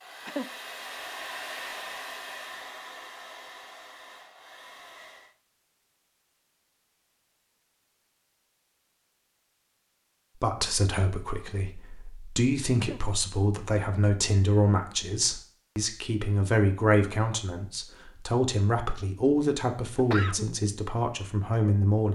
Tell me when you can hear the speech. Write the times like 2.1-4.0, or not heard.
10.4-22.1.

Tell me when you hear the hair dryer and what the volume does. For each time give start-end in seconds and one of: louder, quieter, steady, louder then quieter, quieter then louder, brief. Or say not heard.
0.0-5.3 quieter.